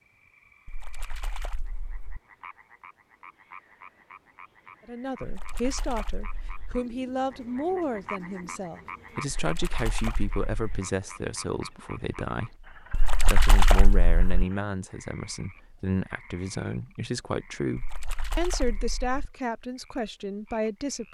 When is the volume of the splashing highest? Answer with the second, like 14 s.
14 s.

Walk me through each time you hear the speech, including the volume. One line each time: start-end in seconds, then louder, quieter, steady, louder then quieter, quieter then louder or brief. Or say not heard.
4.8-21.0 steady.